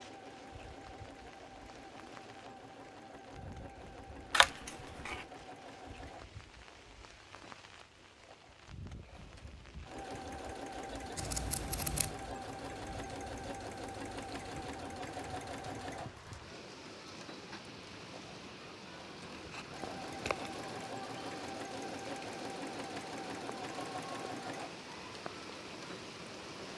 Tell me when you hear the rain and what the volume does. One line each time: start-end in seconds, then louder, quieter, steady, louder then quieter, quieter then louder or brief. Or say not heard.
0.0-26.7 louder.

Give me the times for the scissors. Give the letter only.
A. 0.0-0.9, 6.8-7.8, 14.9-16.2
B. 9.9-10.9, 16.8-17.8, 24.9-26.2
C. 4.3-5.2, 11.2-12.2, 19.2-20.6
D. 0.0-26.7
C.